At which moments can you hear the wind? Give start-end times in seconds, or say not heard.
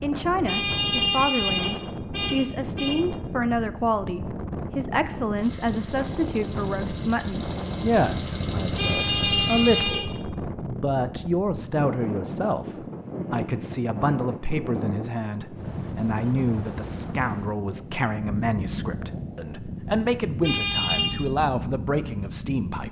0.0-22.8.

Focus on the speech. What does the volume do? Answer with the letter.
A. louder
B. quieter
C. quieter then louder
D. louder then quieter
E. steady
E.